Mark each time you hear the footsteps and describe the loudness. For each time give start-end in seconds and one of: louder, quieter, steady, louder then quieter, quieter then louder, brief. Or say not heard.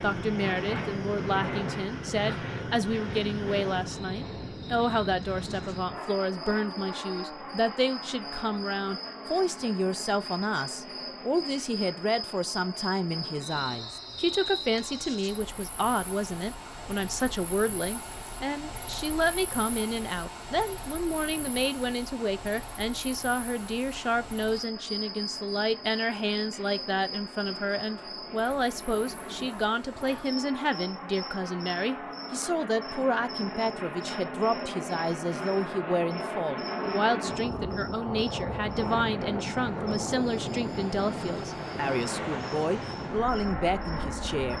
not heard.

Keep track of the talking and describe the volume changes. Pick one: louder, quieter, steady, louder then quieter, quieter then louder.
steady.